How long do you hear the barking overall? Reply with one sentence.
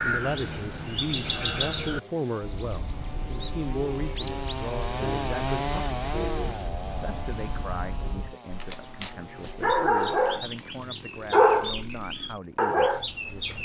The barking can be heard for 3 seconds in total.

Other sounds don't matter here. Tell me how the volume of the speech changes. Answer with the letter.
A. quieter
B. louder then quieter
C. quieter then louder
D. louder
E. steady
A.